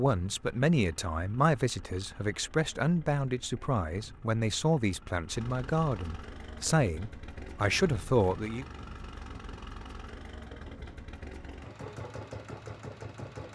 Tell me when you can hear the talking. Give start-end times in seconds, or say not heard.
0.0-8.7.